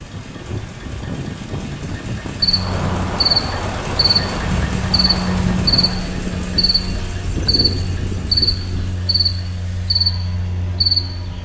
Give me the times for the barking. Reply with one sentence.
The barking can't be heard in this clip.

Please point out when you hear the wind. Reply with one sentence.
You can hear the wind from 0.0 to 8.9 s.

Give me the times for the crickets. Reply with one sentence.
You can hear the crickets from 2.4 to 11.4 s.